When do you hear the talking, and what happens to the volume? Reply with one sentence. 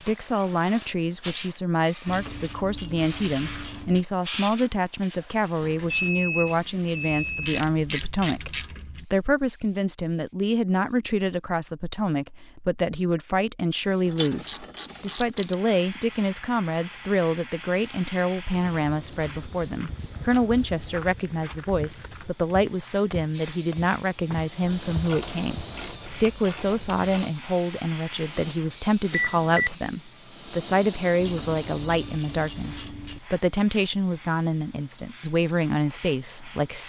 The talking can be heard from 0.1 to 36.8 s, at a steady volume.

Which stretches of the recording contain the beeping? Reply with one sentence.
The beeping can be heard from 5.6 to 7.5 s and from 29.1 to 29.8 s.